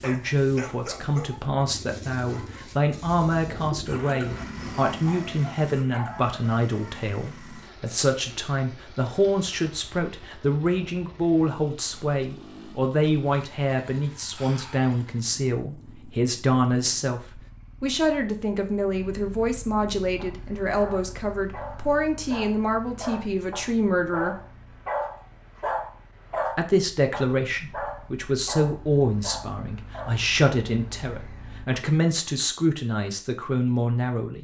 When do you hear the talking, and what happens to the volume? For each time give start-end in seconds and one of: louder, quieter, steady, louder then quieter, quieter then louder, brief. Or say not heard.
0.0-24.4 steady
26.6-34.3 steady.